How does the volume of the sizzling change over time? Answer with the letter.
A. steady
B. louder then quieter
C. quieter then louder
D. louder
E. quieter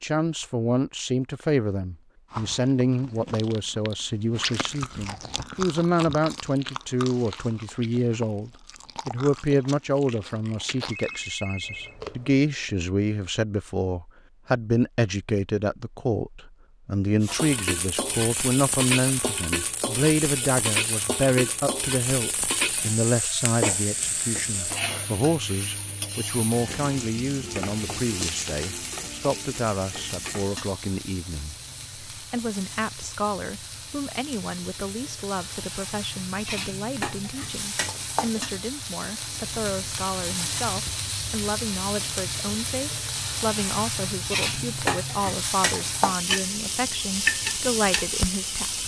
C.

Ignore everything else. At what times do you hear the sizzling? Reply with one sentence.
You can hear the sizzling from 17.2 to 48.8 s.